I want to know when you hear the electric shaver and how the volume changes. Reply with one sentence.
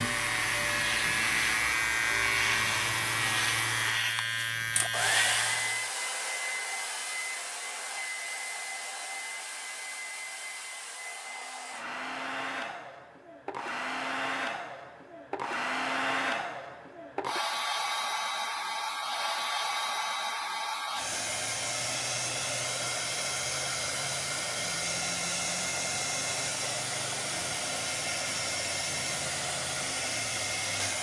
The electric shaver can be heard from 0.0 to 5.9 s, at a steady volume.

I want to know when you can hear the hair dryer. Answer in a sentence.
The hair dryer can be heard from 0.0 to 30.9 s.